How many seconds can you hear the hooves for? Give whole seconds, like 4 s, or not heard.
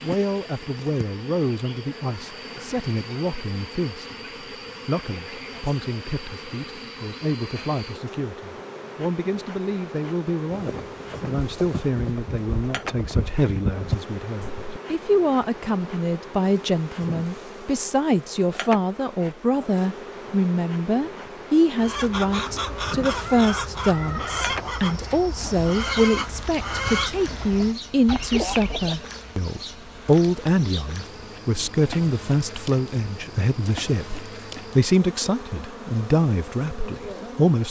4 s.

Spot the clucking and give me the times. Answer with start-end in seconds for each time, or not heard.
21.8-29.1.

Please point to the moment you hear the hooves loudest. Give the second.
14 s.